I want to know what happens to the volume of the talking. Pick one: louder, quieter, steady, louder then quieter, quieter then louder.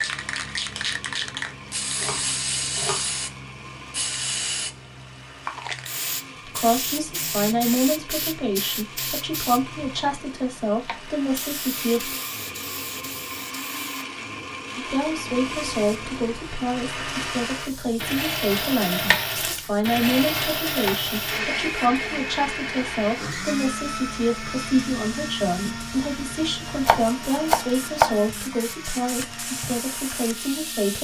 steady.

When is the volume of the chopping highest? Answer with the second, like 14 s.
28 s.